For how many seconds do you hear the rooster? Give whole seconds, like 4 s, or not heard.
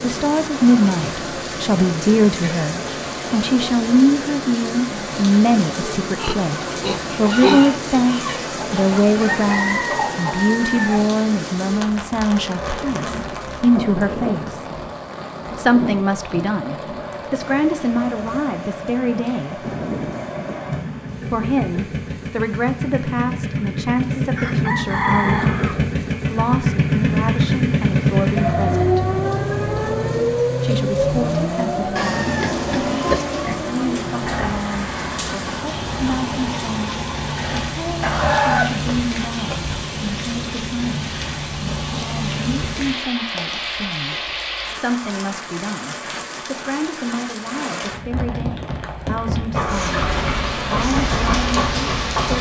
7 s.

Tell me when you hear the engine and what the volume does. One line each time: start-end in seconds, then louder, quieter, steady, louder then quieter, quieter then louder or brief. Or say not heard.
12.3-38.0 louder then quieter
49.5-52.3 brief.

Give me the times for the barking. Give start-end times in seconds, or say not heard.
not heard.